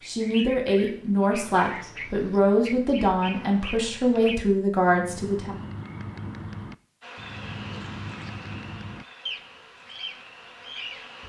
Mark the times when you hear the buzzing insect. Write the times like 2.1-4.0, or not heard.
7.0-11.2.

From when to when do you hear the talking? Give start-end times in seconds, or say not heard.
0.1-5.6.